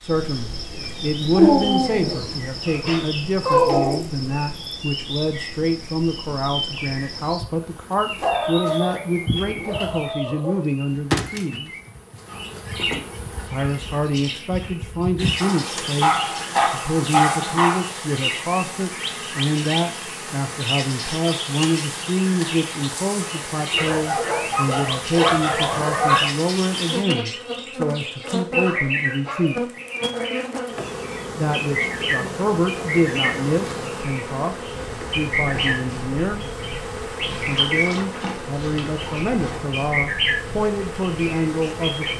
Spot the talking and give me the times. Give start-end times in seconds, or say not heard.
0.0-11.7, 13.4-29.7, 31.4-34.5, 35.1-36.5, 37.5-42.1.